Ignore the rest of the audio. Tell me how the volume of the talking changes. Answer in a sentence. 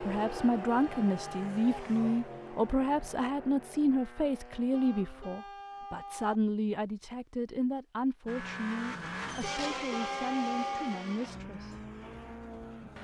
The volume of the talking goes down.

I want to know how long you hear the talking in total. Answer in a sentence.
The talking can be heard for 12 seconds in total.